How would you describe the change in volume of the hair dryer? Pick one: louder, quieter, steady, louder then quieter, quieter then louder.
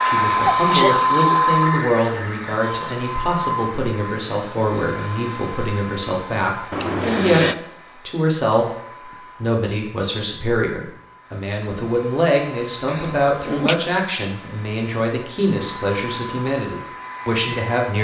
quieter then louder.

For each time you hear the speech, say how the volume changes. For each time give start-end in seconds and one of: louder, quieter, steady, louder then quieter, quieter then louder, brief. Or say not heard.
0.0-7.5 steady
8.1-17.9 steady.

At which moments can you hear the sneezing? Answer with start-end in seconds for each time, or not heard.
0.4-1.0, 6.7-7.5, 12.8-13.8.